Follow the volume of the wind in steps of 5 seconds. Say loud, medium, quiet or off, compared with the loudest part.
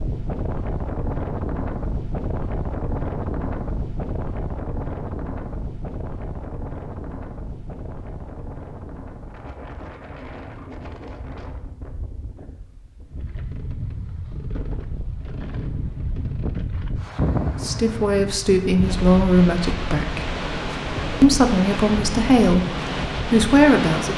loud, medium, medium, loud, loud.